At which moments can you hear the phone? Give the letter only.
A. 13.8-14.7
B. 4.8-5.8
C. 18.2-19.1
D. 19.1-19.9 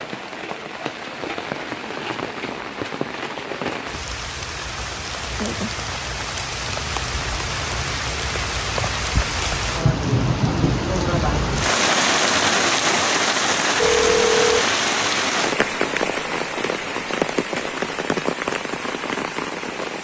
A.